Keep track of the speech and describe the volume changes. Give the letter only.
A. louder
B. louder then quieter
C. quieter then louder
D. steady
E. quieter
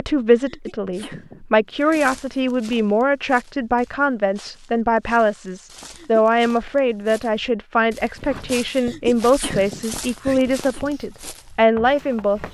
D.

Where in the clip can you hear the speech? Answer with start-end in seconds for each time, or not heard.
0.0-12.4.